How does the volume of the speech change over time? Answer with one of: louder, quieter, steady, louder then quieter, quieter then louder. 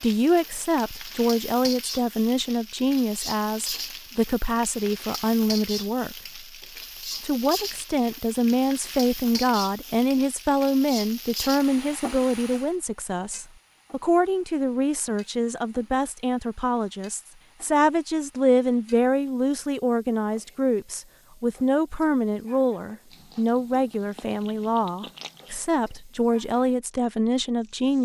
steady.